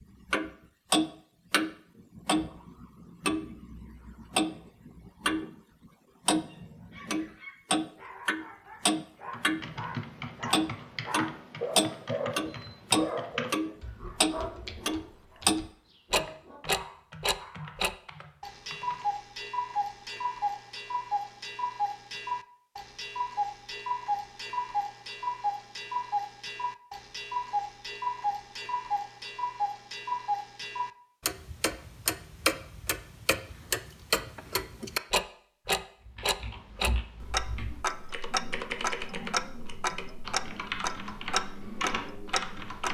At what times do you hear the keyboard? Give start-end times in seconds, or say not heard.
9.3-19.1, 36.0-42.8.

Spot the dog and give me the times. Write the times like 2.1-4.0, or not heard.
6.5-17.8.